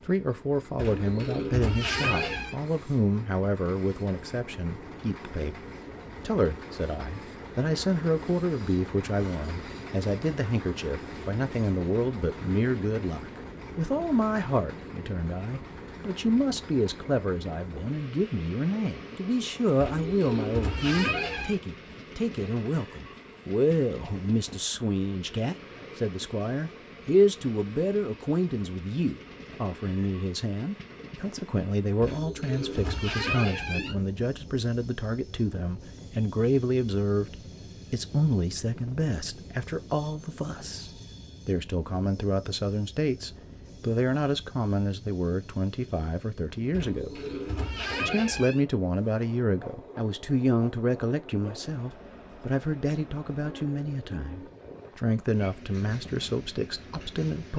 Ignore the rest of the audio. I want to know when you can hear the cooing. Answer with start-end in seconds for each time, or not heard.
0.8-2.5, 19.8-21.6, 32.0-34.0, 46.7-48.6.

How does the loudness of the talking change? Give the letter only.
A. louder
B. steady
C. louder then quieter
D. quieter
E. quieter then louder
B.